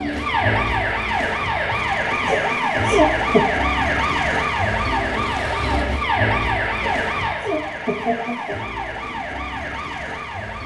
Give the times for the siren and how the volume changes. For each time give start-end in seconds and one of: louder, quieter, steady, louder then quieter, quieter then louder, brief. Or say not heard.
0.0-10.6 quieter.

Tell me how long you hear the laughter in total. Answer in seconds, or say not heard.
3 s.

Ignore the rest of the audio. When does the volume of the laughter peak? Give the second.
3 s.